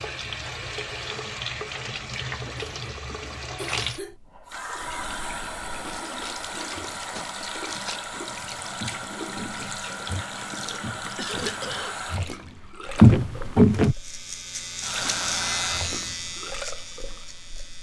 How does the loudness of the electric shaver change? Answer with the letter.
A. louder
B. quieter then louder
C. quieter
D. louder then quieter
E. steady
D.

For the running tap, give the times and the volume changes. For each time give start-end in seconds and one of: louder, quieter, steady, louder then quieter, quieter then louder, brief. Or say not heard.
0.0-17.7 steady.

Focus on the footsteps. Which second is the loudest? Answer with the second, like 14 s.
13 s.